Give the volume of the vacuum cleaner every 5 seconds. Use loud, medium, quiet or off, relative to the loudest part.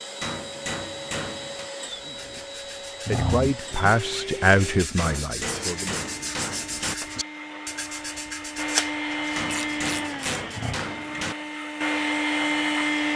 medium, medium, loud.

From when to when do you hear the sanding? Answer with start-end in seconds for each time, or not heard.
1.9-10.8.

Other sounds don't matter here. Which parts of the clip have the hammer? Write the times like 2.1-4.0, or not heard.
0.2-1.7, 5.0-7.0, 9.3-11.3.